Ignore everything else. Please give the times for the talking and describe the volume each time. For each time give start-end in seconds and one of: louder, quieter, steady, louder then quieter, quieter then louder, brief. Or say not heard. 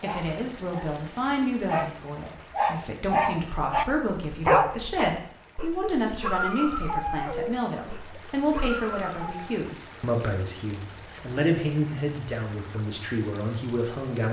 0.0-14.2 steady.